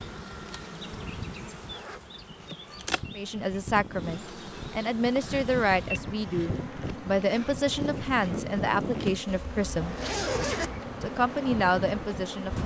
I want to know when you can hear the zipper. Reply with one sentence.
The zipper can be heard from 1.6 to 2.0 s and from 9.2 to 10.8 s.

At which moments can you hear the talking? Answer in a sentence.
The talking can be heard from 3.1 to 9.9 s and from 11.0 to 12.6 s.